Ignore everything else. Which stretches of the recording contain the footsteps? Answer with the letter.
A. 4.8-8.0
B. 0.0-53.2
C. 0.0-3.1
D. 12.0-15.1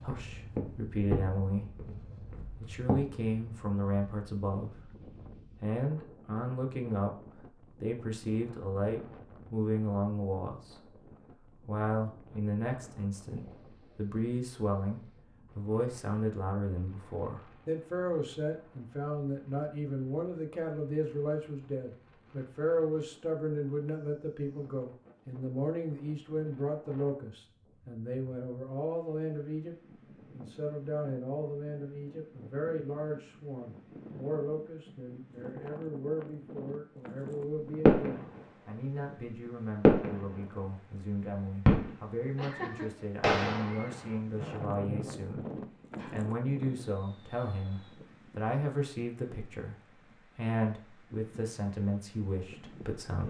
C.